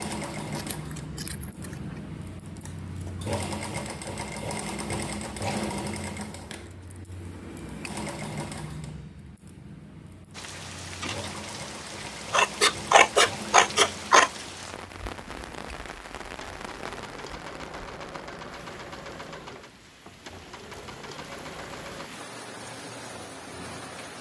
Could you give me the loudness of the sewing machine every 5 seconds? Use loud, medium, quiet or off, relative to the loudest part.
loud, loud, medium, medium, medium.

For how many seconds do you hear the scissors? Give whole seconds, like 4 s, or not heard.
4 s.